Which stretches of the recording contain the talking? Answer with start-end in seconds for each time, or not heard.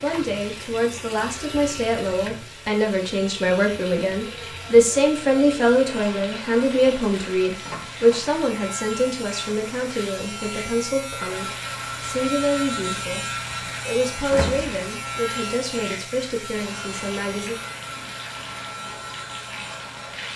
0.0-13.2, 13.8-17.6.